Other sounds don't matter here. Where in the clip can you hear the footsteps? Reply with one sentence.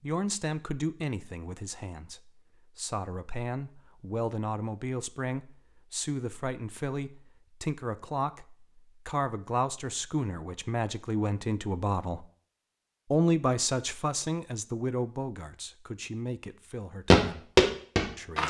You can hear the footsteps from 17.1 to 18.4 s.